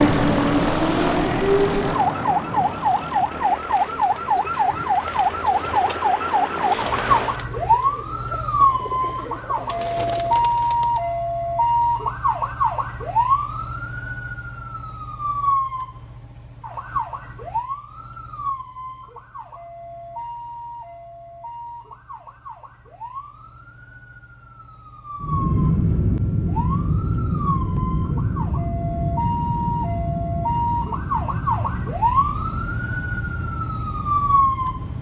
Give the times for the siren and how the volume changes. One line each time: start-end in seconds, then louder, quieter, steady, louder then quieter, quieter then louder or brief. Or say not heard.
0.0-34.9 quieter then louder.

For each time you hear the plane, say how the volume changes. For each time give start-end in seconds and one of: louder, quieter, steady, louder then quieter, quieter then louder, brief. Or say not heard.
0.0-7.5 quieter then louder
25.2-34.9 quieter.